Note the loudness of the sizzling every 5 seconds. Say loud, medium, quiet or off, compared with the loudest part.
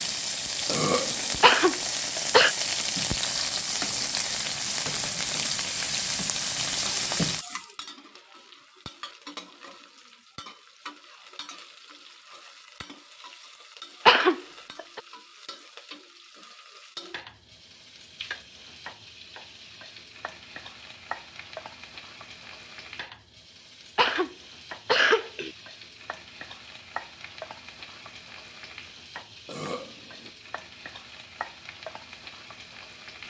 loud, loud, quiet, quiet, quiet, quiet, quiet.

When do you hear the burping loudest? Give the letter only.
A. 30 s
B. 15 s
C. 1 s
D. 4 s
C.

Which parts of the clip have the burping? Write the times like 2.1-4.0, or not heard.
0.7-1.5, 29.4-30.3.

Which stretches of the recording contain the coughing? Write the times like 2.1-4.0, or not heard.
1.4-2.5, 14.1-15.0, 23.9-25.5.